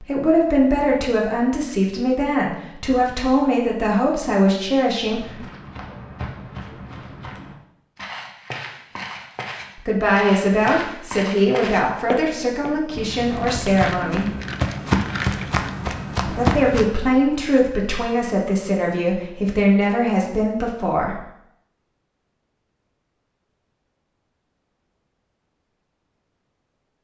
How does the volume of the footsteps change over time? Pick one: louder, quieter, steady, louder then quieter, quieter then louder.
louder.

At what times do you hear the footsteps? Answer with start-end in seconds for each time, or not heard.
5.0-16.9.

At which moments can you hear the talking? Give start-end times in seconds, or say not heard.
0.0-5.5, 9.8-14.3, 16.2-21.2.